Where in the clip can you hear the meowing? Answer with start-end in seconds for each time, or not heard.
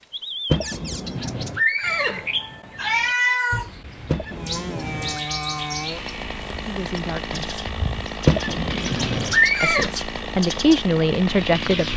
2.8-3.7.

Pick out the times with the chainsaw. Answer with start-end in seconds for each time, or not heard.
4.3-11.9.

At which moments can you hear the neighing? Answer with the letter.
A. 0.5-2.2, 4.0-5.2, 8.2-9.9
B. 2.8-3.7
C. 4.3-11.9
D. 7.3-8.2
A.